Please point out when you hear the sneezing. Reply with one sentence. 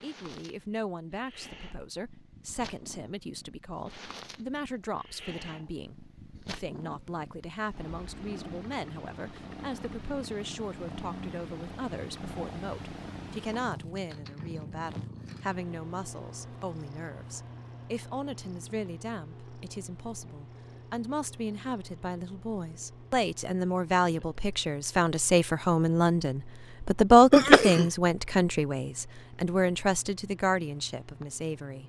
The sneezing can be heard from 27.3 to 27.9 s.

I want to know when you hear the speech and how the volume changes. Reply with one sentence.
The speech can be heard from 0.0 to 31.8 s, getting louder.